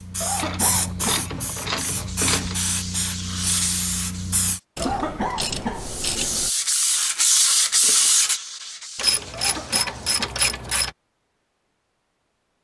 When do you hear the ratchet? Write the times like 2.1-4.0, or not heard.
0.3-2.5, 4.8-6.5, 8.9-10.9.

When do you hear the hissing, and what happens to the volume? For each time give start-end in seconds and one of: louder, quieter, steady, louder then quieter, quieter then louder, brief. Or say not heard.
0.0-4.6 quieter then louder.